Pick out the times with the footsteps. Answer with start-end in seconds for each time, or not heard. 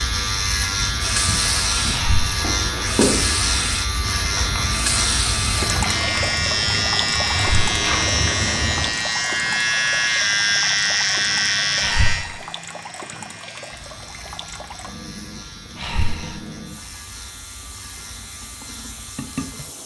1.2-8.9.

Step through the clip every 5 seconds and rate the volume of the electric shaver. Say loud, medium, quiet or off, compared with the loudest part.
loud, loud, loud, quiet.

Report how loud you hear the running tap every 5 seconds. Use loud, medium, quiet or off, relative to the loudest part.
loud, loud, medium, medium.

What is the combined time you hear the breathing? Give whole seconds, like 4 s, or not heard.
2 s.